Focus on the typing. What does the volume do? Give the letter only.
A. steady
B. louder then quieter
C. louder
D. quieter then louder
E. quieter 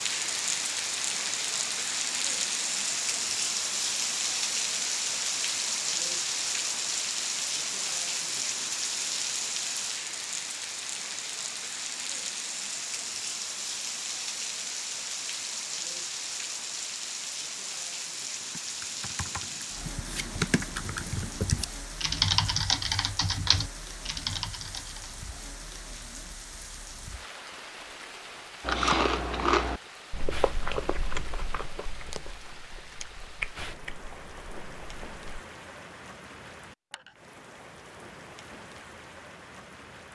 B.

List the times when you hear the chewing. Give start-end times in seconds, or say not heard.
28.6-35.2.